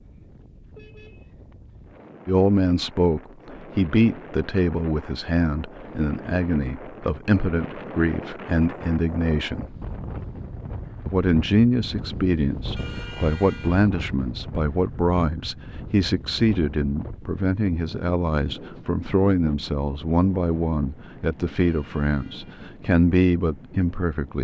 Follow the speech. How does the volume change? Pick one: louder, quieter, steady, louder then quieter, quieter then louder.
steady.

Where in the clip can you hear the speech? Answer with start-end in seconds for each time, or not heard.
2.2-9.8, 11.1-24.3.